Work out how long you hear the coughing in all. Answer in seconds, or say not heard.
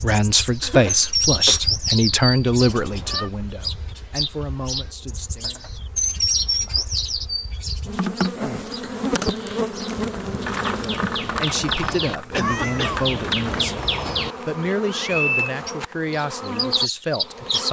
3 s.